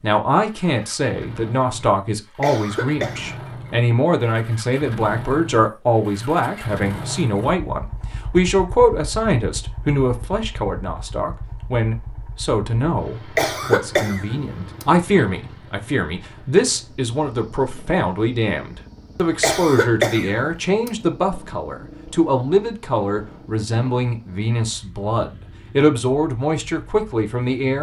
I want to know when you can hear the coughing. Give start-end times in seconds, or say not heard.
2.4-3.5, 13.3-15.2, 19.4-20.9.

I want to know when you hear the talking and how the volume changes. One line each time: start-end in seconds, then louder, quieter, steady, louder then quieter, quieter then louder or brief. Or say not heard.
0.0-27.7 steady.